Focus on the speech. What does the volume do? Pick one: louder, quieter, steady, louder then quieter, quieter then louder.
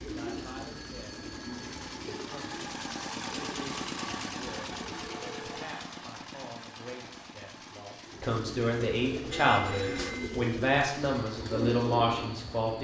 louder.